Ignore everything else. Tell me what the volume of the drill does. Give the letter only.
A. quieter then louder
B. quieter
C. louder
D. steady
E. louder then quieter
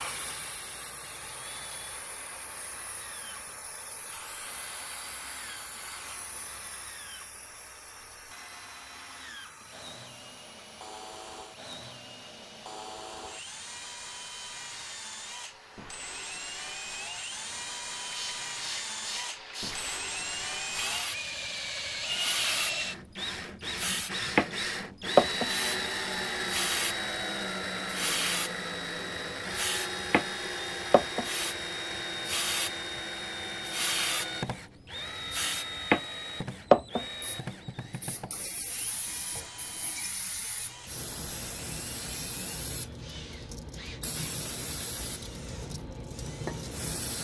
E.